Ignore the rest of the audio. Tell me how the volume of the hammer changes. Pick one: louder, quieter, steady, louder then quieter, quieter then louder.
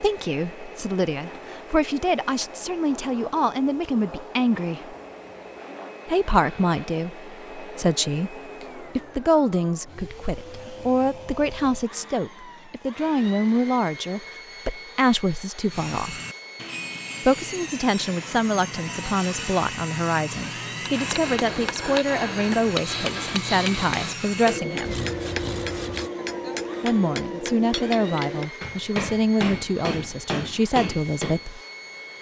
steady.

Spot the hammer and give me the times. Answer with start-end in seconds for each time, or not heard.
20.8-31.4.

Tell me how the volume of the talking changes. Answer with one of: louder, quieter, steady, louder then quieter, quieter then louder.
steady.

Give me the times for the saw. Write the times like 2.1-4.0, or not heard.
15.7-26.1.